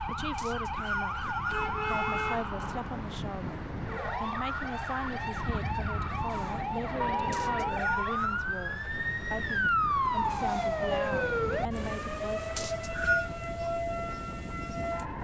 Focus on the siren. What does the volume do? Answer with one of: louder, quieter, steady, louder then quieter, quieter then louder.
louder then quieter.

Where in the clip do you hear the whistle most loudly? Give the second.
13 s.